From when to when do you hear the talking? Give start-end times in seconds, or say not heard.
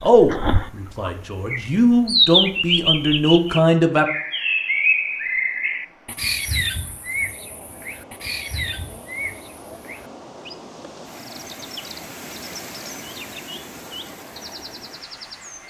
0.0-4.0.